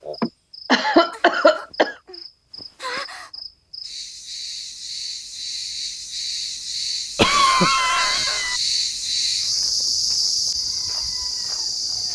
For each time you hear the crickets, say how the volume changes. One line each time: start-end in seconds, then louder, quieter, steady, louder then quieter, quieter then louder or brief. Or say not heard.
0.0-12.0 louder.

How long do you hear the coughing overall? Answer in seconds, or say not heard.
3 s.